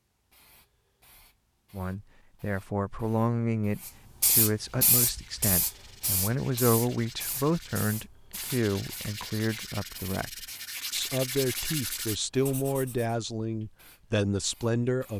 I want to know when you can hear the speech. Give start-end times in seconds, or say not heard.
1.7-15.1.